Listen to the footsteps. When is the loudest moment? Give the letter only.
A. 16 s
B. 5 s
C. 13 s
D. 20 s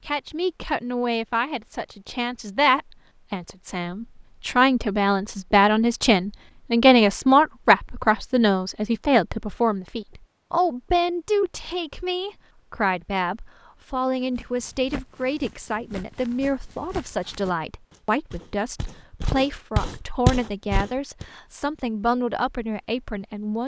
D.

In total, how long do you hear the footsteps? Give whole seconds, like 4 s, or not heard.
7 s.